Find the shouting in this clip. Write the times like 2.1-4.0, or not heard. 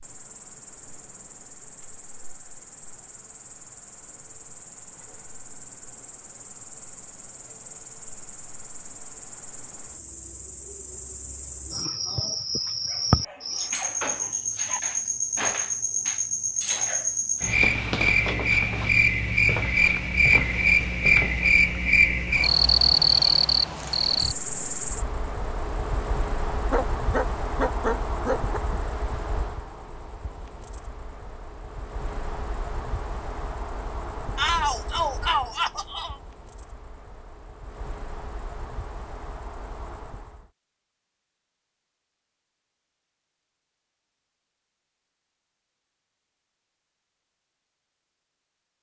34.4-36.1.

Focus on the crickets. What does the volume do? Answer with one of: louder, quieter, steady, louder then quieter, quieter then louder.
louder then quieter.